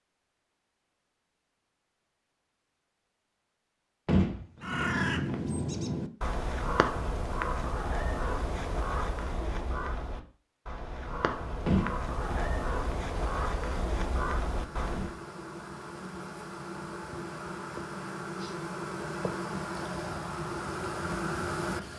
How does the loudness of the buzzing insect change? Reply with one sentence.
The volume of the buzzing insect goes up.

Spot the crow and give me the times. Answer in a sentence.
The crow can be heard from 4.5 to 15.2 s.